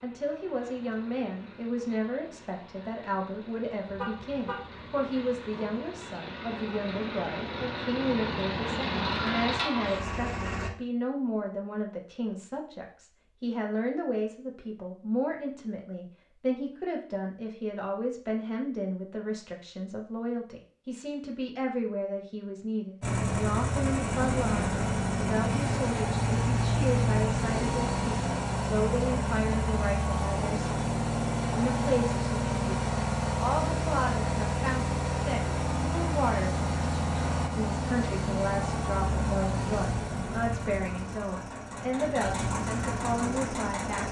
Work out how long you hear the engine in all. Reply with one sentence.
You can hear the engine for 32 seconds altogether.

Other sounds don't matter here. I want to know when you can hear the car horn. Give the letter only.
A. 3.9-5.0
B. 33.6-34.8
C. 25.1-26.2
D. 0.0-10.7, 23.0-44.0
A.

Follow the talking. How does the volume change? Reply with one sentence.
The loudness of the talking stays about the same.